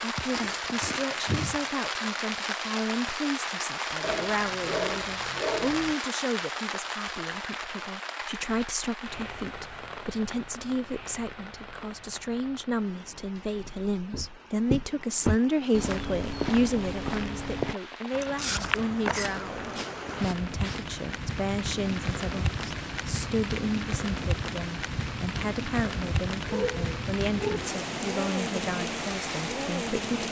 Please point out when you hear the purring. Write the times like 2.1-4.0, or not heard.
not heard.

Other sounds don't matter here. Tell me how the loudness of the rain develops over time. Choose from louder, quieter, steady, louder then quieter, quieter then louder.
quieter then louder.